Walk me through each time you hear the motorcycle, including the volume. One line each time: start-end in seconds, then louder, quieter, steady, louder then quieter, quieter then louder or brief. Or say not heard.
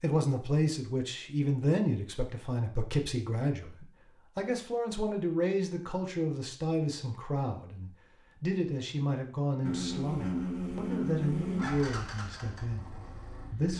9.6-13.7 quieter.